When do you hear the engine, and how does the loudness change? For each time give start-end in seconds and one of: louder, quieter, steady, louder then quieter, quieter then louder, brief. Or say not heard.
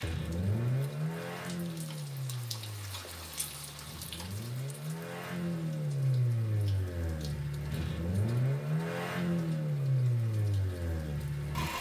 0.0-11.7 quieter then louder.